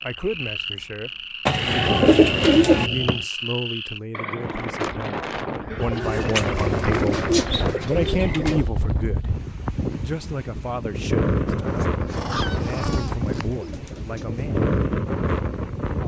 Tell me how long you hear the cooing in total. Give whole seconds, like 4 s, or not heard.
7 s.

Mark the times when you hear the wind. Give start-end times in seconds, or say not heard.
4.4-16.0.